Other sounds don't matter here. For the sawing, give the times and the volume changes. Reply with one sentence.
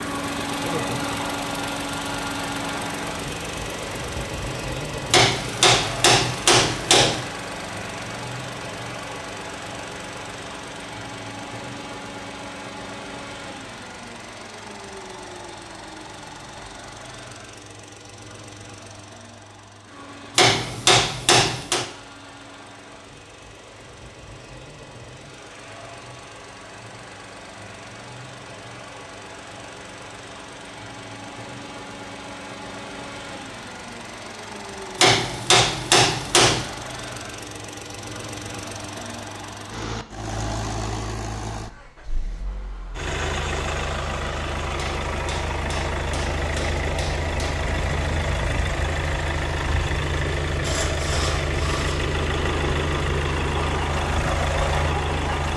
The sawing can be heard from 50.5 to 55.5 s, at a steady volume.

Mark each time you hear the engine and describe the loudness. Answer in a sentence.
You can hear the engine from 0.0 to 55.5 s, getting quieter then louder.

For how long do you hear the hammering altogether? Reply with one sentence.
You can hear the hammering for 8 seconds altogether.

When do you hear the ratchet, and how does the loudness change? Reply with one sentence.
The ratchet can't be heard in this clip.